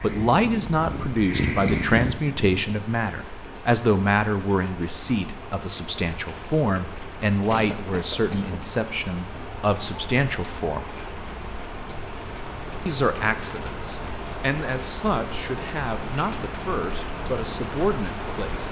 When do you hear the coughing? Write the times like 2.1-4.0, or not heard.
7.5-8.6.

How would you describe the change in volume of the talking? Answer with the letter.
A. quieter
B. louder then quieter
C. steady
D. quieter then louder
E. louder
A.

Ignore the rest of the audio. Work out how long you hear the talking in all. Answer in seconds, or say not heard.
17 s.